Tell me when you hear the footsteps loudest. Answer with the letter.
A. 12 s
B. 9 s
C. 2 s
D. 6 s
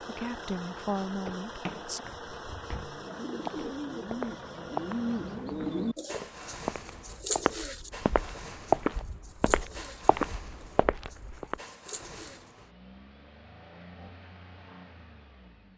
B.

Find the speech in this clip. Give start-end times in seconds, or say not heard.
0.0-2.0.